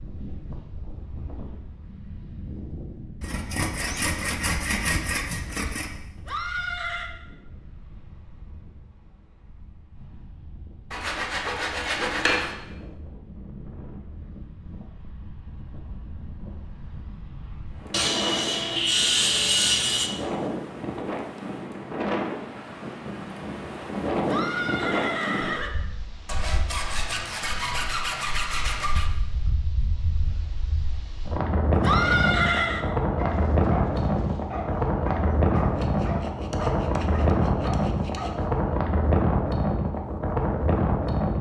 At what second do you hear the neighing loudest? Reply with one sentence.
The loudest moment of the neighing is at 32 seconds.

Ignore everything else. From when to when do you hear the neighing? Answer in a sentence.
The neighing can be heard from 6.2 to 7.1 s, from 24.2 to 25.7 s and from 31.8 to 32.9 s.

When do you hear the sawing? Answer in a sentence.
The sawing can be heard from 3.2 to 5.9 s, from 10.9 to 12.6 s, from 17.9 to 20.1 s, from 26.2 to 29.1 s and from 35.5 to 38.5 s.